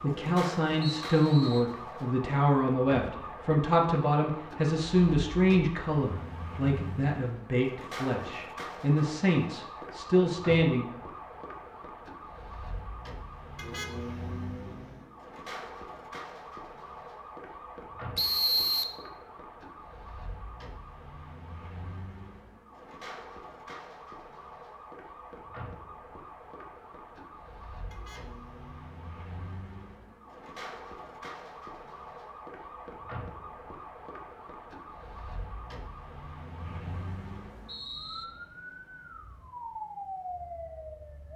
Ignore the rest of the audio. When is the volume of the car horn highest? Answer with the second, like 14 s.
14 s.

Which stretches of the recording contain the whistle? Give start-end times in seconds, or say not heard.
0.8-1.6, 18.1-18.9, 36.6-38.2.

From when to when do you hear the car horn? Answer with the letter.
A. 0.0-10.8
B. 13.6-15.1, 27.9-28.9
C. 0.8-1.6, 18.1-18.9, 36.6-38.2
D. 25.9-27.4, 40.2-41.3
B.